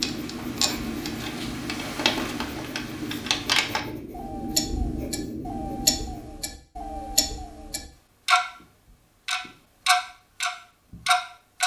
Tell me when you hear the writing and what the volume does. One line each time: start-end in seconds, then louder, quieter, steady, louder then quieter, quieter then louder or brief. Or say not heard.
0.0-6.4 steady.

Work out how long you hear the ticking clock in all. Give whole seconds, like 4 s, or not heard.
11 s.